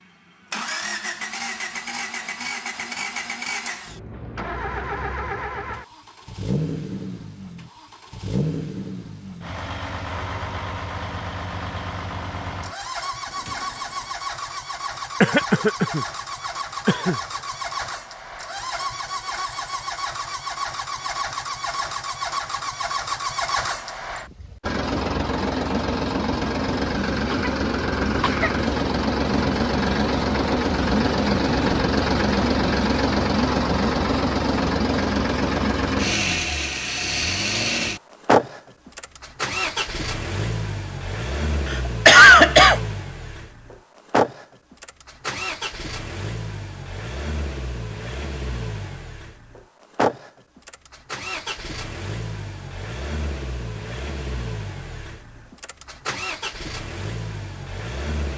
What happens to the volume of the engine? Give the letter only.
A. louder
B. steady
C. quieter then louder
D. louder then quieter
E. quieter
D.